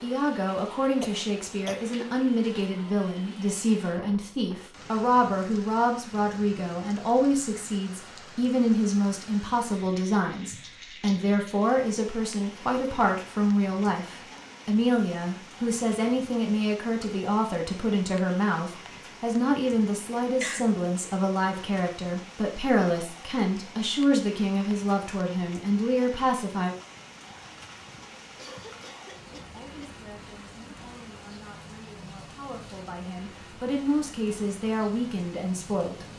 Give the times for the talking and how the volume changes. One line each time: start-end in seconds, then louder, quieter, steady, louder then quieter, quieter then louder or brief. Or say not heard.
0.0-26.8 steady
29.5-36.0 louder.